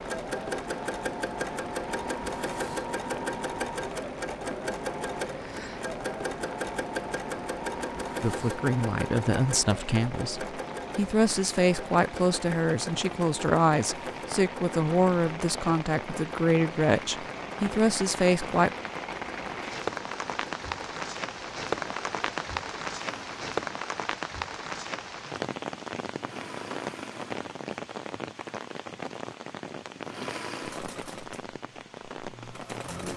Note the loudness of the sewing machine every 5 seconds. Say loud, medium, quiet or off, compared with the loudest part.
loud, loud, medium, medium, quiet, medium, medium.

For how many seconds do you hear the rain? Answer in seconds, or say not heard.
33 s.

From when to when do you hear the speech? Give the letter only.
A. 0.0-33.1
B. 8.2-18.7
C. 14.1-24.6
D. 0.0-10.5
B.